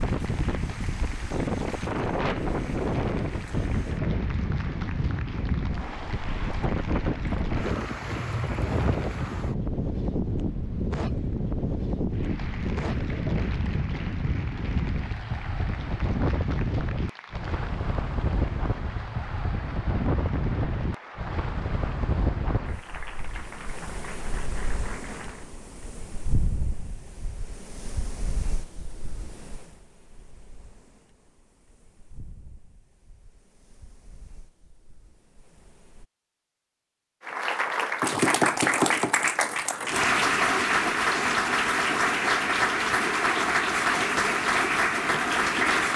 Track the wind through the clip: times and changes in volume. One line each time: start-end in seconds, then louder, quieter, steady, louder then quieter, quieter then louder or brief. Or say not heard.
0.0-36.0 quieter.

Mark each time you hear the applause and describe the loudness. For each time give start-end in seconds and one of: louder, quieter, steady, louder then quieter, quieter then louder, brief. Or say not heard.
0.0-9.3 steady
12.1-25.5 steady
37.2-45.9 steady.